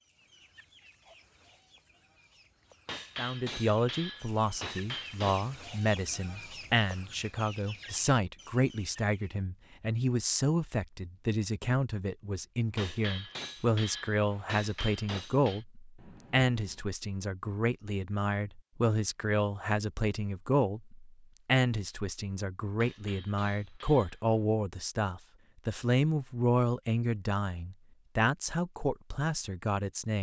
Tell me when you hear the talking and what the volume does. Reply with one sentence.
You can hear the talking from 3.1 to 30.1 s, at a steady volume.